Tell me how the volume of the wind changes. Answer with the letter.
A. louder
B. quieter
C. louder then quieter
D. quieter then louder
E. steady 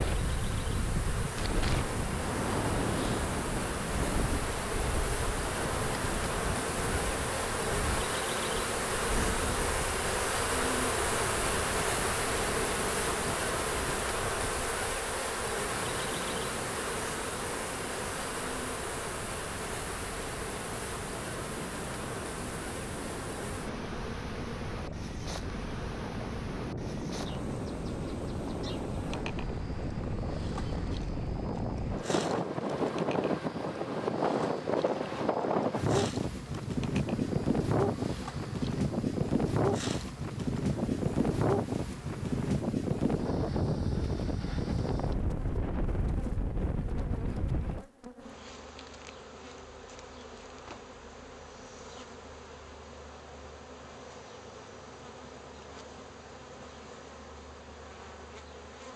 D.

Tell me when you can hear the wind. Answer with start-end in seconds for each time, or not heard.
0.0-47.9.